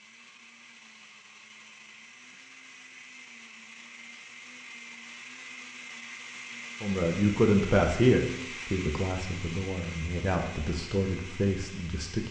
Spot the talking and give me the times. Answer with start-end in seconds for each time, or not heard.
6.8-12.2.